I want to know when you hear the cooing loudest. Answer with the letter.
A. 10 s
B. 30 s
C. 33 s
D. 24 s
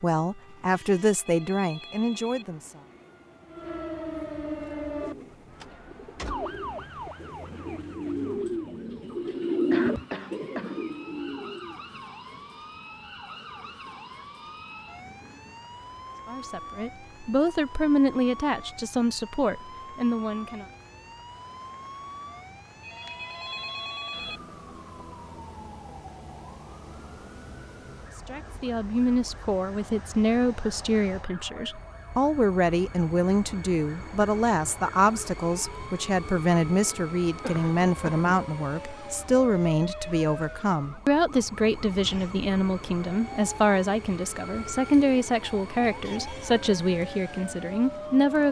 A.